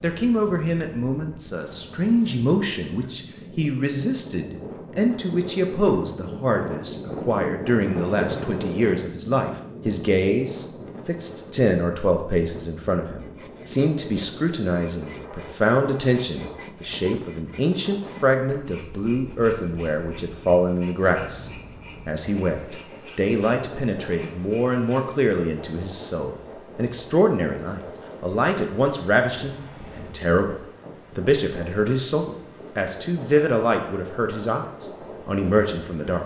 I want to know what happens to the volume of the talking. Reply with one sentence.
The loudness of the talking stays about the same.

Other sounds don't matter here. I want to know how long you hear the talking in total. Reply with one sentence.
You can hear the talking for 36 seconds altogether.